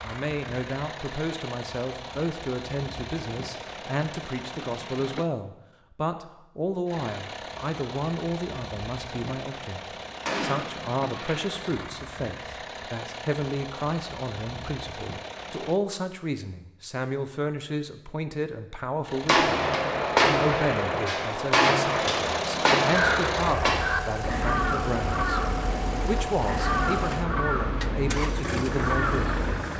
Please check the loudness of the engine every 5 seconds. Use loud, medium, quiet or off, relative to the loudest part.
medium, medium, medium, medium, loud, loud.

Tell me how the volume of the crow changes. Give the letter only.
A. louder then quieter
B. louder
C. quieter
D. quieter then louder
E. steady
E.